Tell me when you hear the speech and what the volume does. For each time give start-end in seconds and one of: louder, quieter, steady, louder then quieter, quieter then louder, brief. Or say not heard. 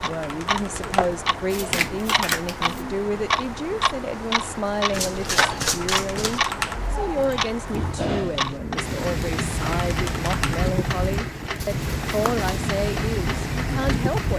0.0-14.3 steady.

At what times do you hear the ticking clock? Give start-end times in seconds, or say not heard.
0.0-14.3.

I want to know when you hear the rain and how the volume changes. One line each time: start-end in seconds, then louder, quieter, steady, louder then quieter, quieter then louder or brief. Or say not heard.
0.0-14.3 louder.